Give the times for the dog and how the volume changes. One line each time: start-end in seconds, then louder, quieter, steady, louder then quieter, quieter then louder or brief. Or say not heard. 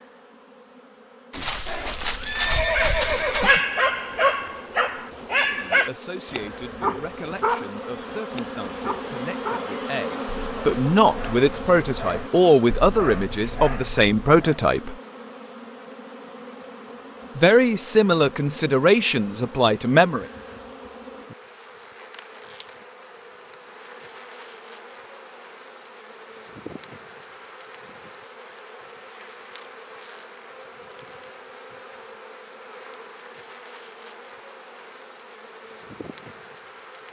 2.7-14.6 quieter then louder.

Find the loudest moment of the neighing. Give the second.
3 s.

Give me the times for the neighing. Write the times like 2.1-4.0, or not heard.
1.3-3.6.